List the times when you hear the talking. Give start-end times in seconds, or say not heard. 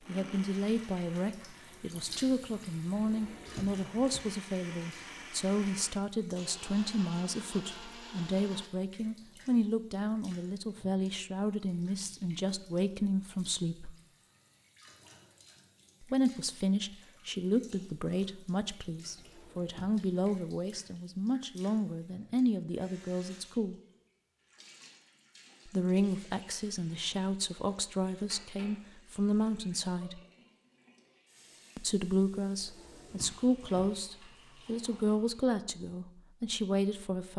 0.1-13.9, 16.0-23.8, 25.6-30.2, 31.8-37.3.